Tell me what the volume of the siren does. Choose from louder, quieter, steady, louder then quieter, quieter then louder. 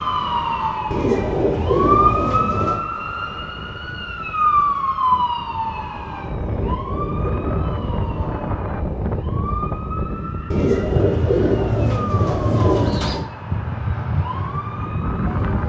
quieter.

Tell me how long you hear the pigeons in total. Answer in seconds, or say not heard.
7 s.